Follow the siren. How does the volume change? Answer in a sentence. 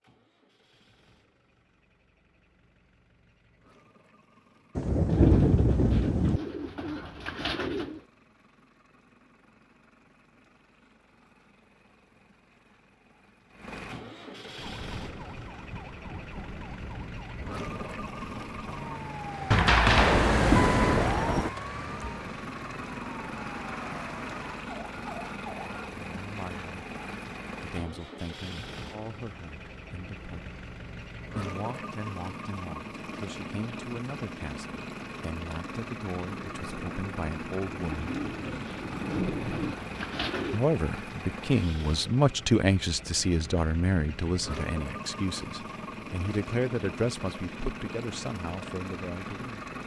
The volume of the siren goes up, then down.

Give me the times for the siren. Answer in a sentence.
You can hear the siren from 14.6 to 25.9 s.